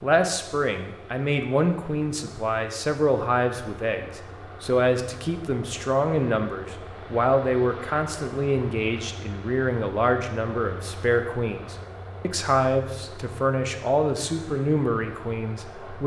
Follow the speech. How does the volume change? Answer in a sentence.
The volume of the speech stays about the same.